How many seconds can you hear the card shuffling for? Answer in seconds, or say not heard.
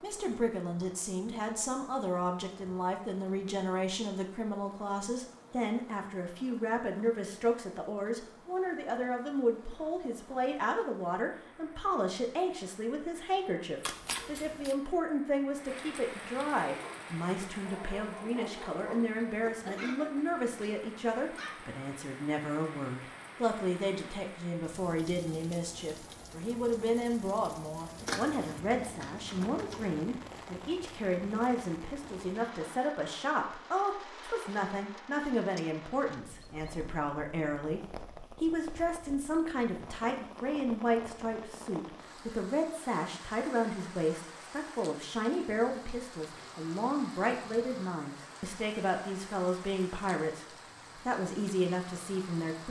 3 s.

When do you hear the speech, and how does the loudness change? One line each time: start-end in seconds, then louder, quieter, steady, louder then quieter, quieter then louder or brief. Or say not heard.
0.0-52.6 steady.